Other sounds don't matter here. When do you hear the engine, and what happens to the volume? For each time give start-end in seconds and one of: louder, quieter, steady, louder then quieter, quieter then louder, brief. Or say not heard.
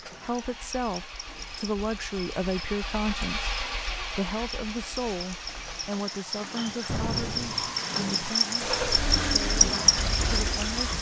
0.0-6.0 louder then quieter
8.6-10.9 brief.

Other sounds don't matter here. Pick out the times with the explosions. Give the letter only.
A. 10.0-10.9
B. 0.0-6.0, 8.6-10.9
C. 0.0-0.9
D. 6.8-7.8
D.